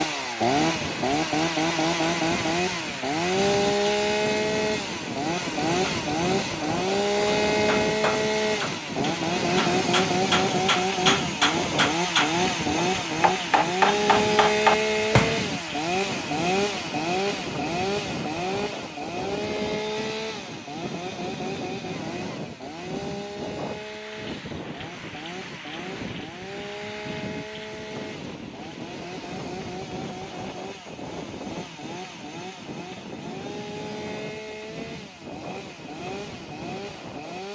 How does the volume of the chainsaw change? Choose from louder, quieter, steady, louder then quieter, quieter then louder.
quieter.